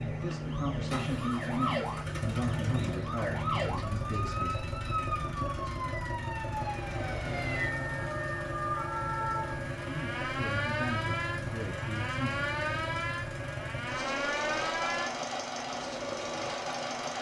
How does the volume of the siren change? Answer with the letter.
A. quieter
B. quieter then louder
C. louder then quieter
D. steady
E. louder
D.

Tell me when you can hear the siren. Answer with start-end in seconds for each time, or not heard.
0.0-17.1.